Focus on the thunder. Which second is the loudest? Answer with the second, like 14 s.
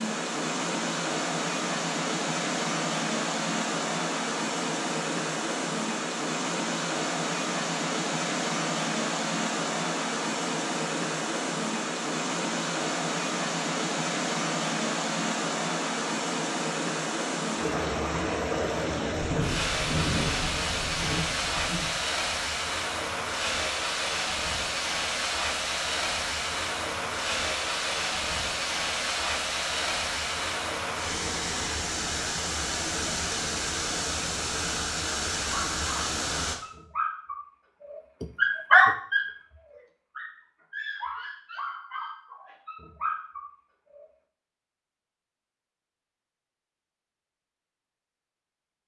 20 s.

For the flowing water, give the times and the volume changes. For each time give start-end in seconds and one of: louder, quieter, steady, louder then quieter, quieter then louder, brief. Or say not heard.
0.0-36.5 steady.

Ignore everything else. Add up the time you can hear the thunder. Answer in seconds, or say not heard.
3 s.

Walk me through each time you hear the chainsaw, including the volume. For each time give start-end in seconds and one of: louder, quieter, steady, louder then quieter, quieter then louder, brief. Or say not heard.
not heard.